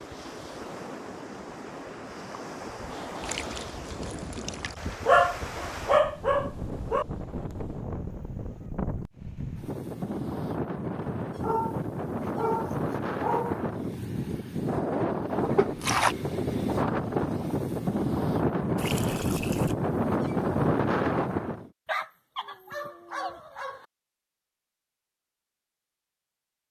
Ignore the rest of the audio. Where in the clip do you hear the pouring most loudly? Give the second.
16 s.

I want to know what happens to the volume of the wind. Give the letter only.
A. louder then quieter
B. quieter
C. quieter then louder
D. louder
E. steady
D.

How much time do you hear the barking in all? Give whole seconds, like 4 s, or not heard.
6 s.